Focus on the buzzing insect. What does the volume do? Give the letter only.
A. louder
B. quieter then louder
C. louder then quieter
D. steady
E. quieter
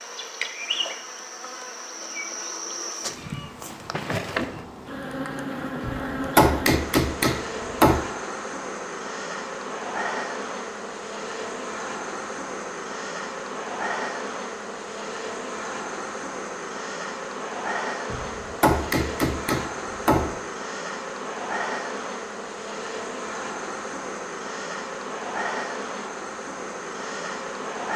D.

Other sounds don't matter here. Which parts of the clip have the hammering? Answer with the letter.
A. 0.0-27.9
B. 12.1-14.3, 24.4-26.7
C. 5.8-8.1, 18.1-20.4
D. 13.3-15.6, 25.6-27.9
C.